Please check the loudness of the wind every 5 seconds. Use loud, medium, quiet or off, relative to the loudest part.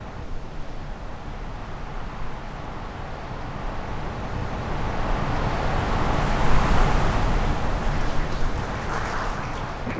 medium, loud.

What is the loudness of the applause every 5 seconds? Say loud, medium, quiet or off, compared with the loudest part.
off, loud.